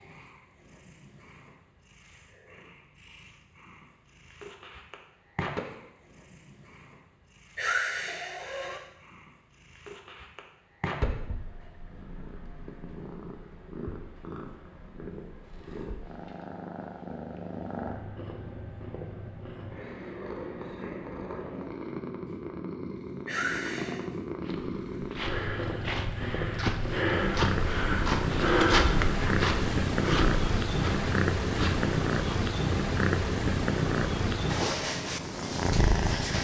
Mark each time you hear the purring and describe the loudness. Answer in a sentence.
You can hear the purring from 0.0 to 36.3 s, getting louder.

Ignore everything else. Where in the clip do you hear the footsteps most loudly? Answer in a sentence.
The loudest moment of the footsteps is at 29 seconds.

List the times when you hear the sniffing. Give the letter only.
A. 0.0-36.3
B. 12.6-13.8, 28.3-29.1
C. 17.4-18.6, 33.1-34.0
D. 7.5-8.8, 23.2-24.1
D.